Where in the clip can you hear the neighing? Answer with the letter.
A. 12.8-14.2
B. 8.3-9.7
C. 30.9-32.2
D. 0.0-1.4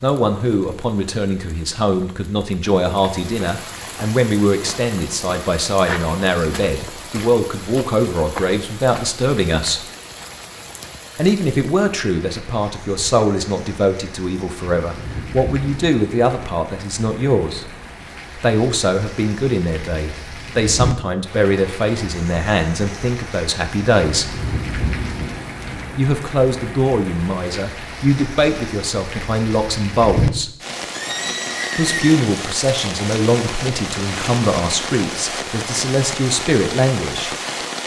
C.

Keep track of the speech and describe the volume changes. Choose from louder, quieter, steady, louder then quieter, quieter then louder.
steady.